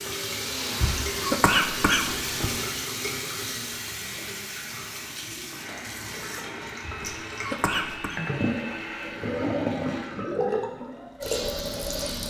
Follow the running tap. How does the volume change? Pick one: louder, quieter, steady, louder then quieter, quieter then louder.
quieter then louder.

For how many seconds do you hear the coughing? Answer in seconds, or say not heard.
3 s.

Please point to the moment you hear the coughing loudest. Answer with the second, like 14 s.
1 s.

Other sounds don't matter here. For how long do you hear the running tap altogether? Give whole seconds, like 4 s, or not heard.
12 s.